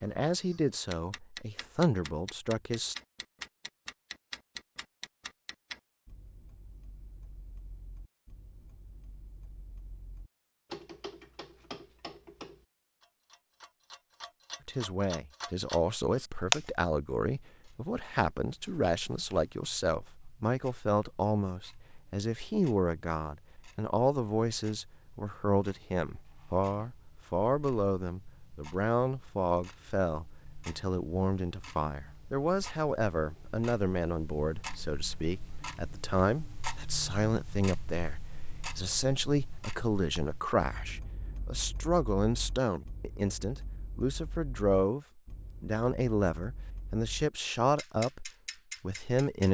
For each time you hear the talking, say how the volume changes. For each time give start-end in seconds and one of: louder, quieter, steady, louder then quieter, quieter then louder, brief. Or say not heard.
0.0-3.0 brief
14.7-49.4 steady.